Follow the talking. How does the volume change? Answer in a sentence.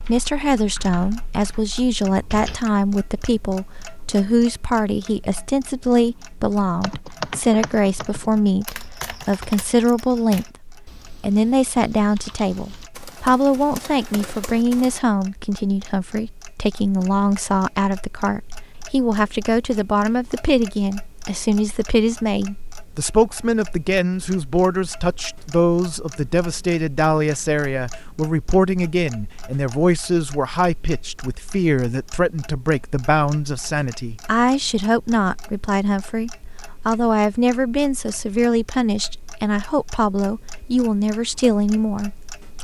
The loudness of the talking stays about the same.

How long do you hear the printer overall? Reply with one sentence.
You can't hear the printer here.